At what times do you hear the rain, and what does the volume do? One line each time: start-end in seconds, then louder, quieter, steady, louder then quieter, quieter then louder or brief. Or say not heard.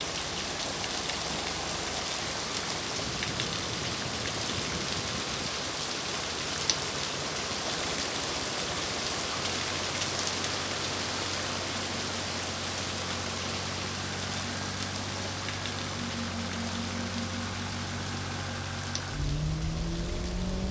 0.0-20.6 quieter.